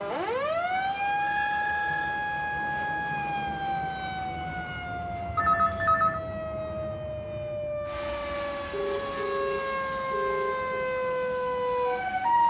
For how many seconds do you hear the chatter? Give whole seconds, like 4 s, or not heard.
not heard.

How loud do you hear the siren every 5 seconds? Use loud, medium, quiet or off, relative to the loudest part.
loud, medium, loud.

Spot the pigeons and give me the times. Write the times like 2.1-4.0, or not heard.
not heard.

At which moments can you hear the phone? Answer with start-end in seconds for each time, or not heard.
0.8-2.2, 5.3-6.2, 8.7-10.9.